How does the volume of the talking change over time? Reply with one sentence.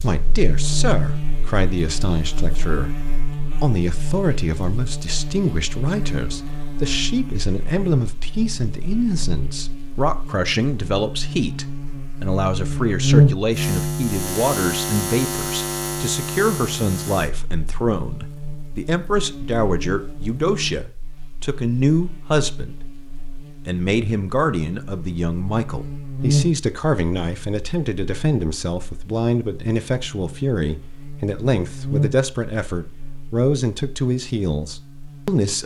The loudness of the talking stays about the same.